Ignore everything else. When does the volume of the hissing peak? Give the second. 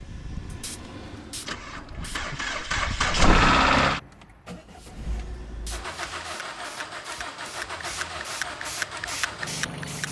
9 s.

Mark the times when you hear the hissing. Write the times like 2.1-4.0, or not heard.
0.0-2.7, 4.8-10.0.